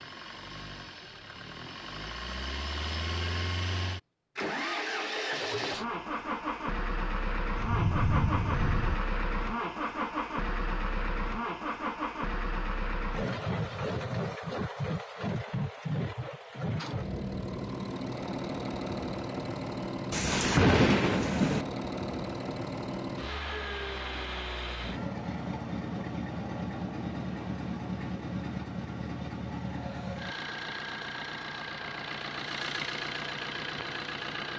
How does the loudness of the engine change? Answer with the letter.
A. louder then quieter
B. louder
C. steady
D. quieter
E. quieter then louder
C.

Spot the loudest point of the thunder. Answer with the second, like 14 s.
21 s.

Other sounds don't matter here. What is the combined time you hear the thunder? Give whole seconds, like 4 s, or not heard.
3 s.